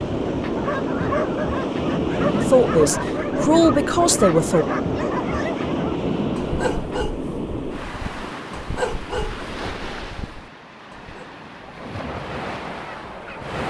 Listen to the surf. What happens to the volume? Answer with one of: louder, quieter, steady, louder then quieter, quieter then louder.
quieter.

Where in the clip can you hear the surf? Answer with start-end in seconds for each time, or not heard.
0.0-13.6.